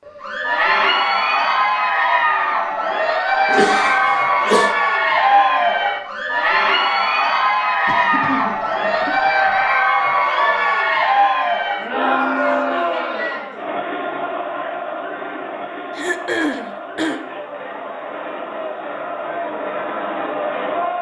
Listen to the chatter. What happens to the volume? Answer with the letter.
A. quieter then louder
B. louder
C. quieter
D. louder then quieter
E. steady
C.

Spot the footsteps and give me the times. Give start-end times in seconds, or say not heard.
not heard.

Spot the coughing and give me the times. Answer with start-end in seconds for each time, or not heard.
3.5-4.8, 7.8-9.7, 15.9-17.2.